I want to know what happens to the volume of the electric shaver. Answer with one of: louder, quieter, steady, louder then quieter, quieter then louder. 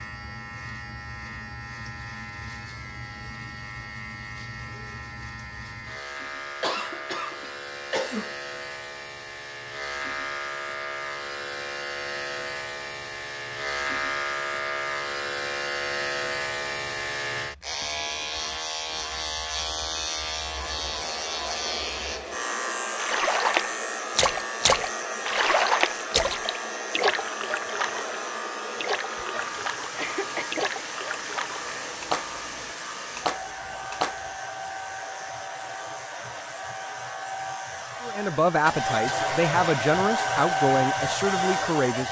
louder then quieter.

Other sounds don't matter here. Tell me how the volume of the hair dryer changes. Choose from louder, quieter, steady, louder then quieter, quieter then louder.
louder.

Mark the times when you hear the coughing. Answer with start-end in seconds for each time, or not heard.
6.6-8.3, 29.9-30.6.